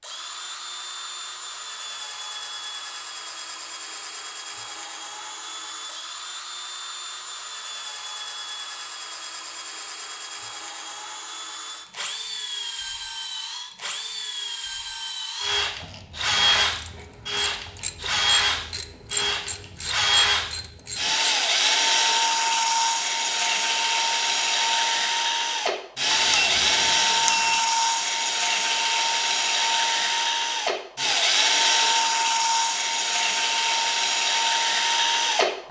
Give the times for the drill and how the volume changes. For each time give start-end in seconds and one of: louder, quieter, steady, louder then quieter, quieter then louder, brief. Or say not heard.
0.0-35.6 louder.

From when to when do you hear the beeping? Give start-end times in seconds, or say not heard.
26.1-27.6.